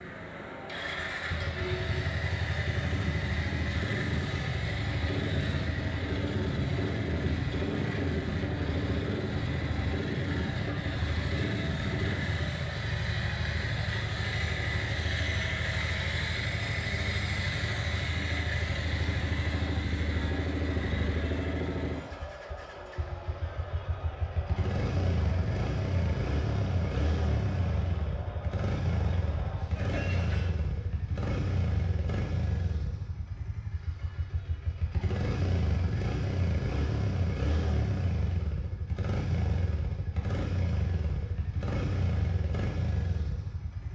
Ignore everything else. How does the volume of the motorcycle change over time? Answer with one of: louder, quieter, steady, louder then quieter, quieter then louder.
steady.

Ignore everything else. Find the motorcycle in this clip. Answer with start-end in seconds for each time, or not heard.
0.0-43.9.